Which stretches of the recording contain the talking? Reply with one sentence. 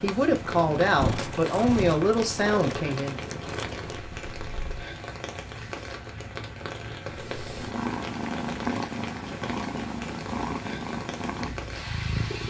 The talking can be heard from 0.0 to 3.2 s.